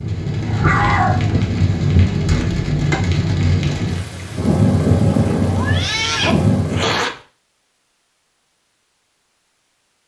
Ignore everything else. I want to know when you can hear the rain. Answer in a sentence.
The rain can be heard from 0.0 to 7.0 s.